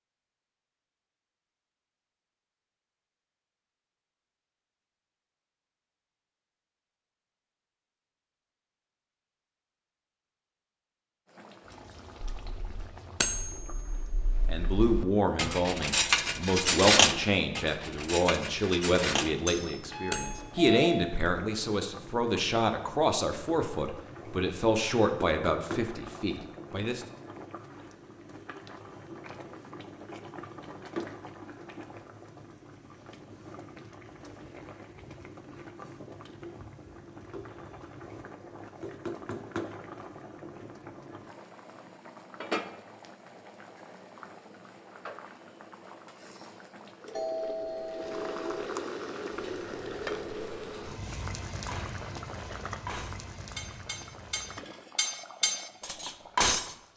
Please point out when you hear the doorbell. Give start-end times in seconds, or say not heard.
19.8-21.2, 47.1-48.6.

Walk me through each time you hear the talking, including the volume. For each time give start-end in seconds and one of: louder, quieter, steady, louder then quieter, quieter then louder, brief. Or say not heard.
14.4-27.1 steady.